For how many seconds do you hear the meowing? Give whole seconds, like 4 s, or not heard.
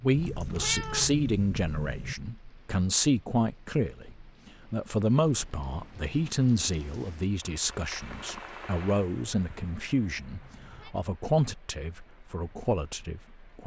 3 s.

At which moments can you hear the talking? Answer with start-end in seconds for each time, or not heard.
0.0-13.6.